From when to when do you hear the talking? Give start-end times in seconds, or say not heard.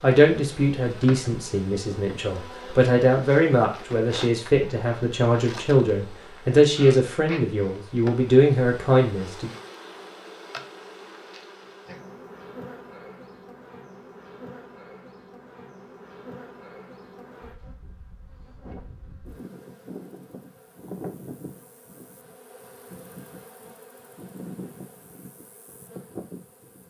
0.0-9.5.